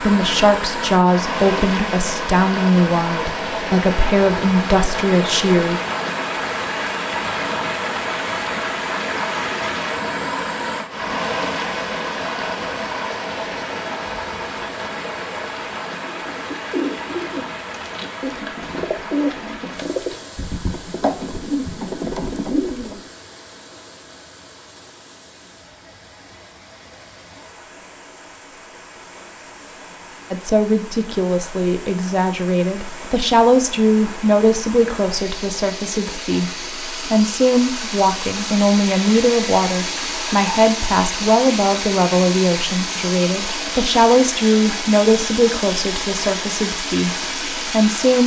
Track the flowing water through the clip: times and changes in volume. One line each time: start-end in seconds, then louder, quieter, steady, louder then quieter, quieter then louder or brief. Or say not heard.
0.0-48.2 quieter then louder.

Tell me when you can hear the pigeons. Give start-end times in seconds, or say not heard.
16.1-23.0.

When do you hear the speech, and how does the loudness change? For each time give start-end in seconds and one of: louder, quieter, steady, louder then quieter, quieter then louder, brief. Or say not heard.
0.0-5.8 steady
30.3-48.2 steady.